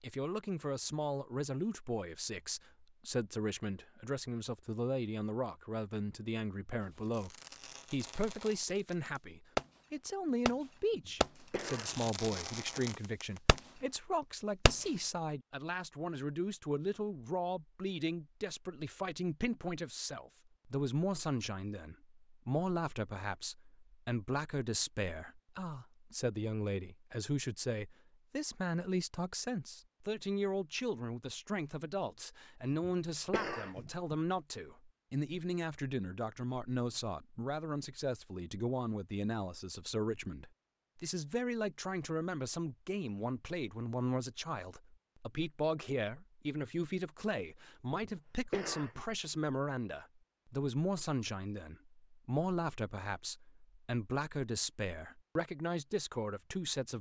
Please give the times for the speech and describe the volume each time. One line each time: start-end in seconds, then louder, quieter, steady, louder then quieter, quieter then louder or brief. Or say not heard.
0.0-56.9 steady.